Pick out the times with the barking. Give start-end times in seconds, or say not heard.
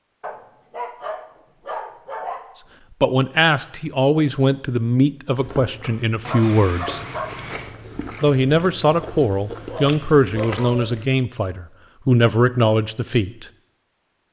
0.2-2.6, 6.2-7.8, 9.7-10.8.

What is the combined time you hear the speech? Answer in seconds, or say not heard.
9 s.